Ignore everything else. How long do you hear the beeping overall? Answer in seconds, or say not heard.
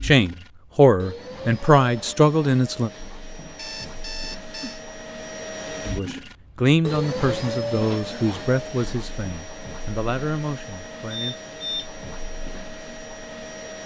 2 s.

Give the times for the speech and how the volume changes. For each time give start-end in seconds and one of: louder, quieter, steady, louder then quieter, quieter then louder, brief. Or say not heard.
0.0-2.9 brief
5.8-11.5 quieter.